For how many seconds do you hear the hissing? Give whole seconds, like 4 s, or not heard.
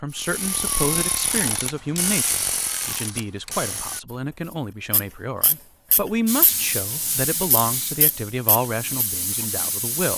4 s.